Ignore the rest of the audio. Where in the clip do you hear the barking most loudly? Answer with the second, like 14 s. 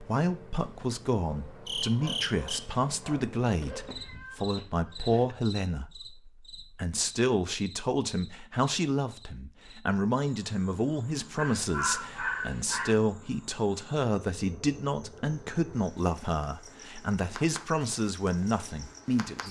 12 s.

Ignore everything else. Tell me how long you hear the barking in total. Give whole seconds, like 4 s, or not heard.
4 s.